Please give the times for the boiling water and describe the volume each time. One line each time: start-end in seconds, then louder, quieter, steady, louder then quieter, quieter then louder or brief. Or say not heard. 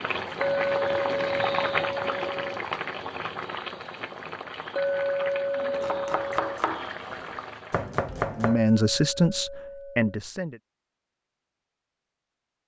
0.0-8.0 quieter.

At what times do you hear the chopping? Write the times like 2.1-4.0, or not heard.
5.8-8.6.